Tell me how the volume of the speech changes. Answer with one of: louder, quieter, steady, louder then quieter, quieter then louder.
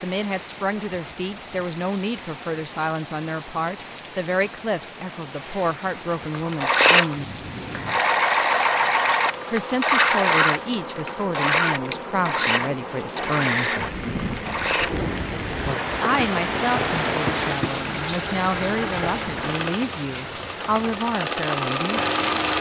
steady.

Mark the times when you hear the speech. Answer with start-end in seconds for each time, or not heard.
0.0-7.4, 9.5-13.8, 16.0-22.0.